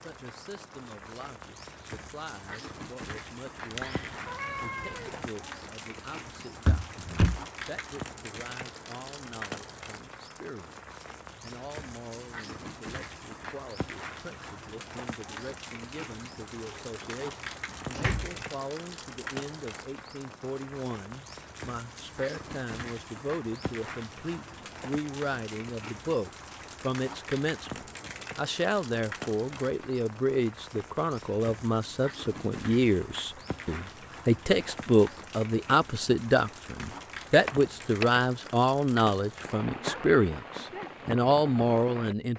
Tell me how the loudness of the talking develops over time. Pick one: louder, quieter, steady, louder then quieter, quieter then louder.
louder.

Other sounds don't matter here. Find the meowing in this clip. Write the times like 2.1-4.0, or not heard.
3.6-5.3.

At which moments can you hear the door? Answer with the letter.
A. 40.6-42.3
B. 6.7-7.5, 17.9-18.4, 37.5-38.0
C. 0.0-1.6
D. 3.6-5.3
B.